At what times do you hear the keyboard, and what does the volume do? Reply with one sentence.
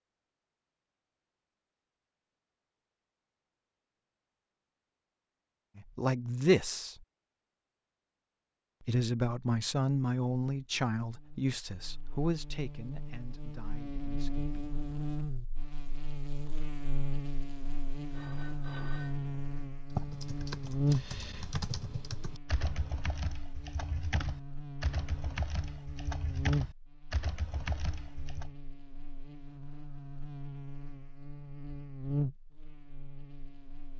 You can hear the keyboard from 19.9 to 28.5 s, at a steady volume.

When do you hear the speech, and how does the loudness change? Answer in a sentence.
You can hear the speech briefly from 5.8 to 7.0 s; and from 8.8 to 14.5 s, getting quieter.